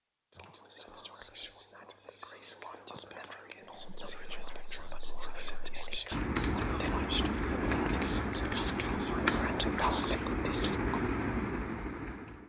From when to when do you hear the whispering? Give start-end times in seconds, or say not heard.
0.3-11.0.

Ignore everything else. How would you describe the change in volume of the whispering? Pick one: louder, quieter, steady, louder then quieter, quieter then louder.
louder.